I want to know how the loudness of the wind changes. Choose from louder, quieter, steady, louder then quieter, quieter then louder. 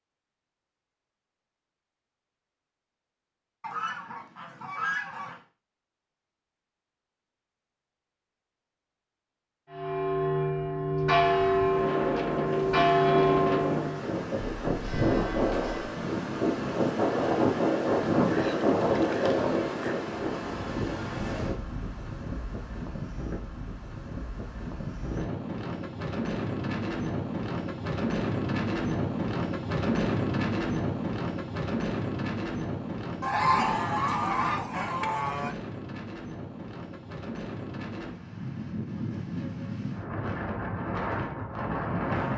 quieter.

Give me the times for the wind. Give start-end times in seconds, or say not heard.
11.2-42.3.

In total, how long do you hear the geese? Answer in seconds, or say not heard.
6 s.